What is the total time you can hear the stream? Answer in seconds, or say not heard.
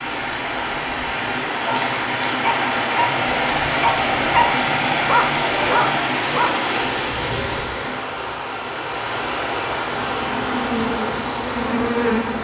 12 s.